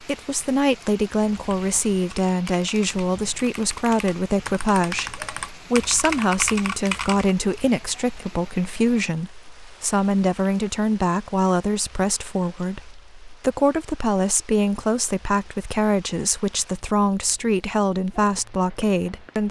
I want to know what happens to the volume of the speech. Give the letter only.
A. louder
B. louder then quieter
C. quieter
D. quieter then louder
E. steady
E.